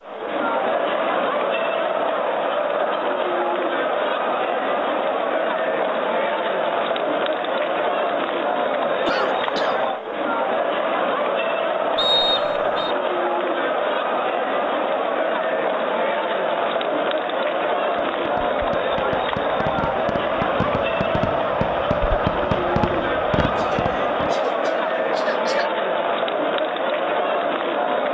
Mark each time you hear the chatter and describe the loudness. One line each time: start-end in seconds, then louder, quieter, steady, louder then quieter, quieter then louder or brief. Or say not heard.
0.0-28.1 steady.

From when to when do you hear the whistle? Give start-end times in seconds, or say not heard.
11.9-12.9.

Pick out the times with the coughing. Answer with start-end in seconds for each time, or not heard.
9.0-9.8, 23.6-25.7.